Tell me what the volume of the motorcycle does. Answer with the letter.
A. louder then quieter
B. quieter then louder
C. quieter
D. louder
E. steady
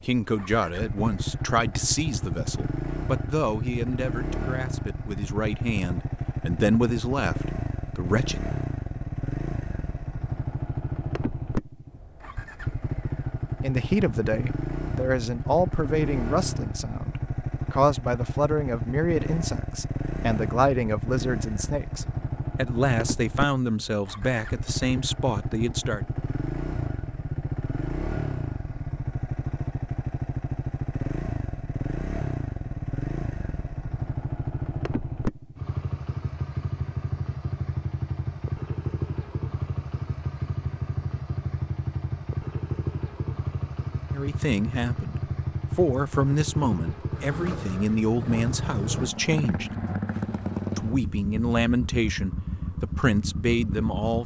E.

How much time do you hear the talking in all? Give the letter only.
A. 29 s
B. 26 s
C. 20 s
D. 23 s
A.